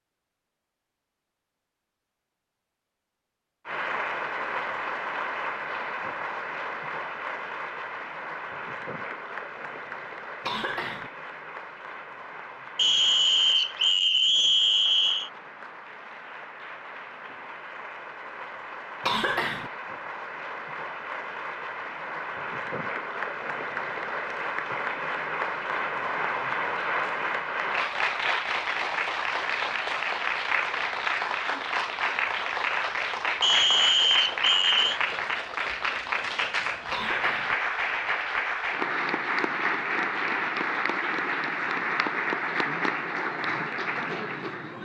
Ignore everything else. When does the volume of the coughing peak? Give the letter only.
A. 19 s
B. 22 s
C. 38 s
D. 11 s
A.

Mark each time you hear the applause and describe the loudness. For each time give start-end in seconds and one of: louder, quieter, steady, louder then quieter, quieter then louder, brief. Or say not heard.
3.6-44.8 quieter then louder.